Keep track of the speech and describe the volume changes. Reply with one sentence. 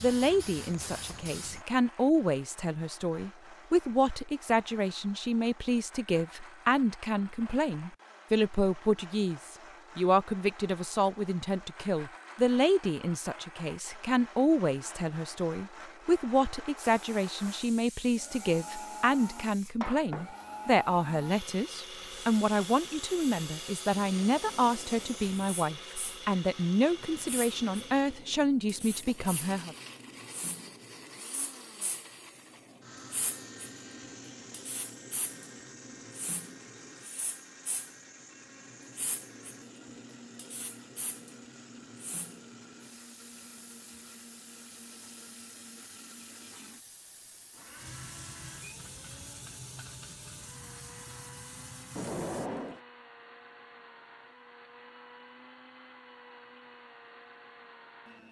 The loudness of the speech stays about the same.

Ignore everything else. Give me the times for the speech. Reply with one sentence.
You can hear the speech from 0.0 to 29.8 s.